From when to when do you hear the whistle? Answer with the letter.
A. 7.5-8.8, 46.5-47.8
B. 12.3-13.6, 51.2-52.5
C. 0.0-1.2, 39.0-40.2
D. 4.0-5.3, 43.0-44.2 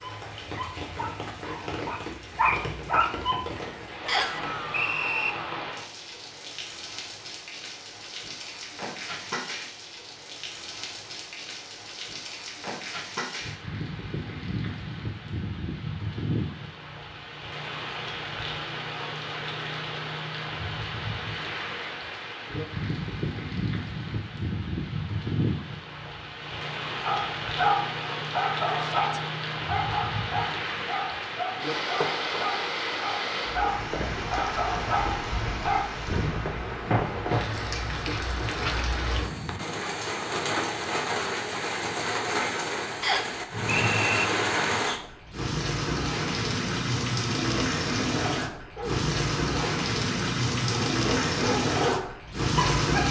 D.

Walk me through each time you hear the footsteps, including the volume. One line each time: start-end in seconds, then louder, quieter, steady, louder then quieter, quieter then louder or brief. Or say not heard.
not heard.